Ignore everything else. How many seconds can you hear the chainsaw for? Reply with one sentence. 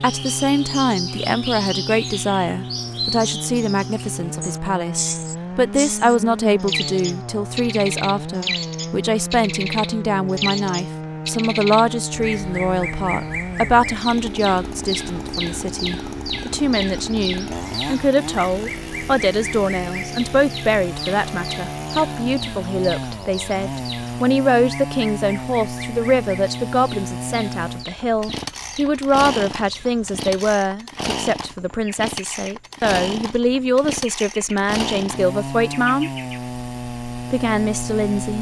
The chainsaw can be heard for 38 seconds in total.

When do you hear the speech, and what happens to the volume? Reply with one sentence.
The speech can be heard from 0.0 to 36.1 s, at a steady volume; and briefly from 37.2 to 38.3 s.